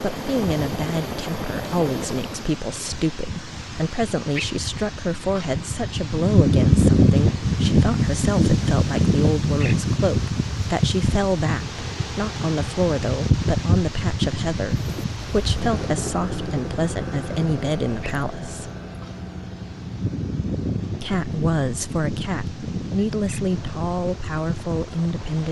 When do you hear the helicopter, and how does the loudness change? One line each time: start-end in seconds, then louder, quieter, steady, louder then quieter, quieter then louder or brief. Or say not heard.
0.0-2.6 brief
14.7-25.4 quieter.